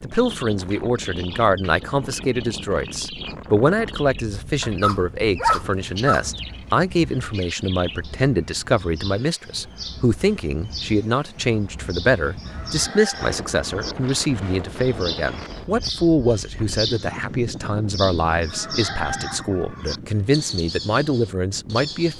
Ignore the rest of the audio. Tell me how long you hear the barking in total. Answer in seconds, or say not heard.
2 s.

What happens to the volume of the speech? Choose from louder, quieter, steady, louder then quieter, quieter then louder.
steady.